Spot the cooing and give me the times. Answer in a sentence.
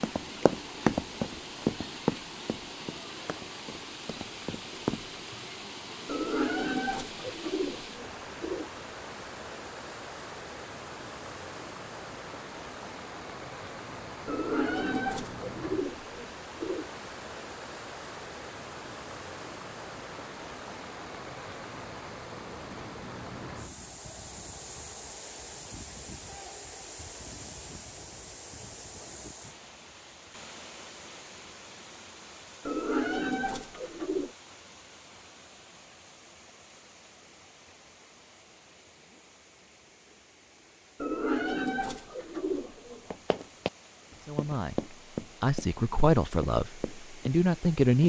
You can hear the cooing from 6.0 to 8.7 s, from 14.2 to 16.9 s, from 32.6 to 34.3 s and from 41.0 to 43.1 s.